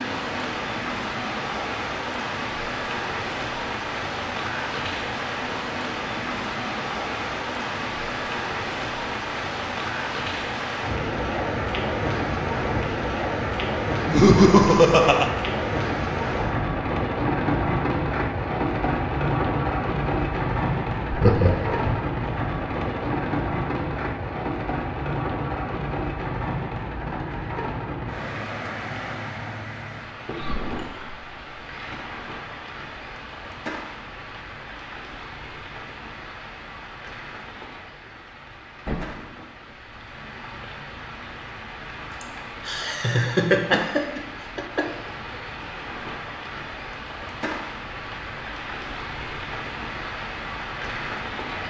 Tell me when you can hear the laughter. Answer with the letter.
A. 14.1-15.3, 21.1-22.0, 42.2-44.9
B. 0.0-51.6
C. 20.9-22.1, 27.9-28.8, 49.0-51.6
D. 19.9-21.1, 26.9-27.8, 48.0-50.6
A.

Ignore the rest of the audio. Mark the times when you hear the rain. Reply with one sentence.
The rain can be heard from 0.0 to 51.6 s.